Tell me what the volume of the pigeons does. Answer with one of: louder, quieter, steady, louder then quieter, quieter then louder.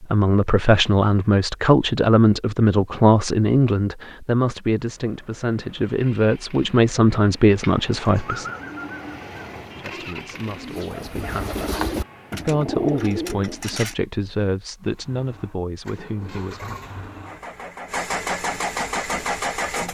quieter then louder.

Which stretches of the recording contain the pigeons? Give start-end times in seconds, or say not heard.
7.6-13.9.